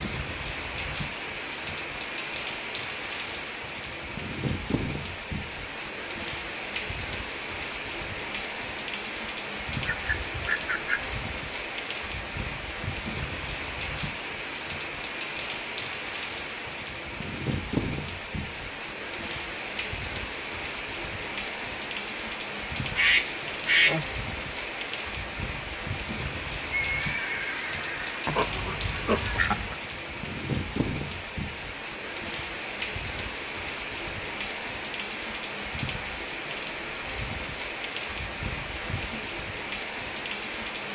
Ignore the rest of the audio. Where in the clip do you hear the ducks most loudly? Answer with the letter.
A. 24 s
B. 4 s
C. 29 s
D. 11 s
A.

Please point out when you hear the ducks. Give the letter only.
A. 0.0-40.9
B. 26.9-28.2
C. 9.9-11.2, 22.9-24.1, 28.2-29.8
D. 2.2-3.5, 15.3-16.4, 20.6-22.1
C.